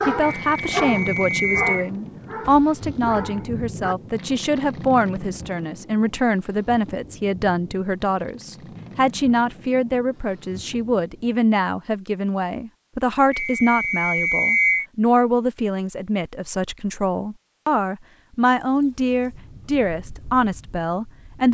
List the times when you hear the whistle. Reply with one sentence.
You can hear the whistle from 0.2 to 1.9 s and from 13.3 to 14.8 s.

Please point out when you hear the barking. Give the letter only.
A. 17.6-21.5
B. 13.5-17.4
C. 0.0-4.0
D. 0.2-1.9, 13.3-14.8
C.